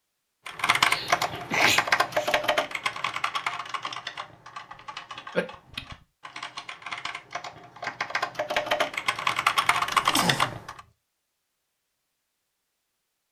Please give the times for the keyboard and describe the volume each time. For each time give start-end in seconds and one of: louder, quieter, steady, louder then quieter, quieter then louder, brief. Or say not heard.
0.5-10.8 quieter then louder.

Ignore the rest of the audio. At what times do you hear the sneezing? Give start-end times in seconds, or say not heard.
0.8-2.4, 5.3-6.0, 9.8-10.6.